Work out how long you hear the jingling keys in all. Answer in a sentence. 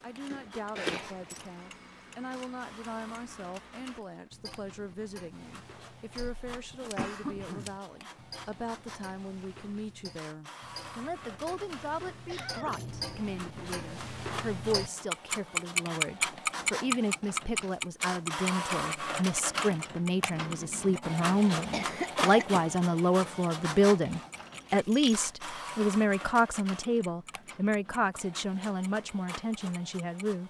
The jingling keys can be heard for 2 seconds in total.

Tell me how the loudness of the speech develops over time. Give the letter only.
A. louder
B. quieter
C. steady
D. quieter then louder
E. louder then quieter
A.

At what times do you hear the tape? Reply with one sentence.
You can't hear the tape here.